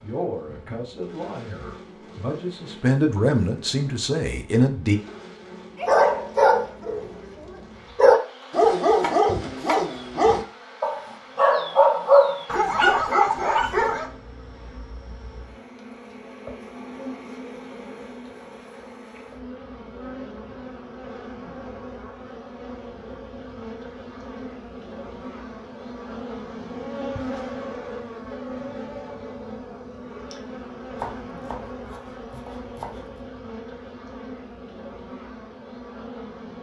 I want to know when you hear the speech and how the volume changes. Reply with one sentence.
The speech can be heard from 0.0 to 5.0 s, getting louder.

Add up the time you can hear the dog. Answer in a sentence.
The dog can be heard for 8 seconds in total.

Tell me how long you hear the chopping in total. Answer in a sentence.
The chopping can be heard for 4 seconds in total.